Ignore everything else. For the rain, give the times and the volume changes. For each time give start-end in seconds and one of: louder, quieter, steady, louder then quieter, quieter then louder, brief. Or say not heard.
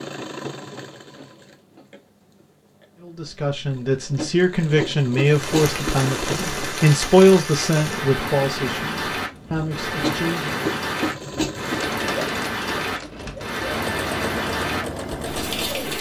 5.2-15.9 steady.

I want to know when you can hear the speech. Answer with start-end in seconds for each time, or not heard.
3.0-10.6.